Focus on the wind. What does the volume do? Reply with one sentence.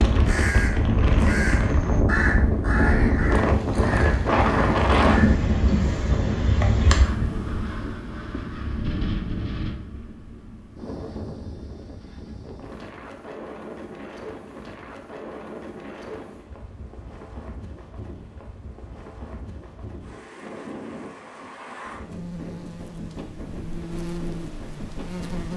The loudness of the wind goes down.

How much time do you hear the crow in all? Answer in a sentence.
The crow can be heard for 5 seconds in total.